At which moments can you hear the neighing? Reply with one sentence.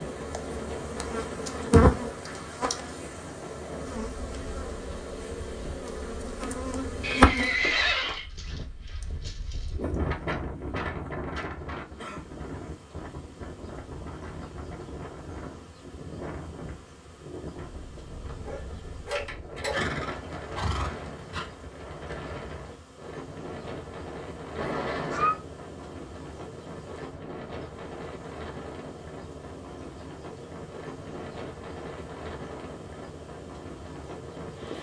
You can hear the neighing from 7.0 to 8.2 s, from 19.7 to 21.5 s and from 24.6 to 25.4 s.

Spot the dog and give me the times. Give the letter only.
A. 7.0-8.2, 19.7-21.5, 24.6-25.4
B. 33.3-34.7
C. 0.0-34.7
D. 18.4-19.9
D.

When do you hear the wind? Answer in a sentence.
The wind can be heard from 0.0 to 34.7 s.